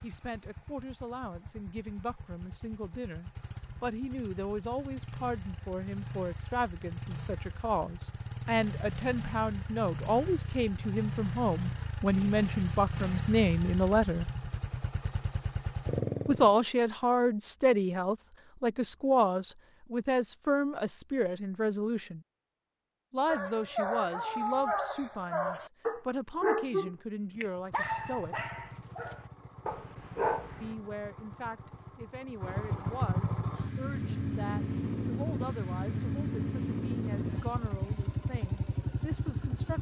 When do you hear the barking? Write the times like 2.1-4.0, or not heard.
23.2-30.8.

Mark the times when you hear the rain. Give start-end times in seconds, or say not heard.
not heard.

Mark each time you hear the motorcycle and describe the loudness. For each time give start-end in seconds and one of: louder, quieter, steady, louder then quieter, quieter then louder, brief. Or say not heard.
0.0-16.6 louder
27.4-39.7 louder.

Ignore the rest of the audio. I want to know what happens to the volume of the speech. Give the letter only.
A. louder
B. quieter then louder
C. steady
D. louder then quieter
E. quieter
D.